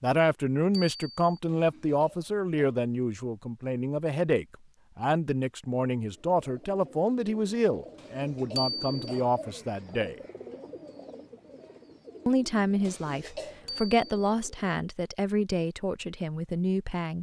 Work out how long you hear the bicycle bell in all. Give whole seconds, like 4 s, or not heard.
2 s.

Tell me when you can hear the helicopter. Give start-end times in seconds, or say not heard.
not heard.